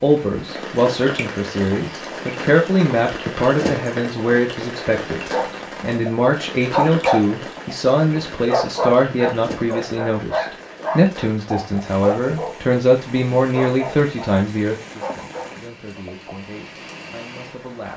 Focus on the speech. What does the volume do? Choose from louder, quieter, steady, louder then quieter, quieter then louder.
quieter.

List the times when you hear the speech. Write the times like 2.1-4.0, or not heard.
0.0-17.9.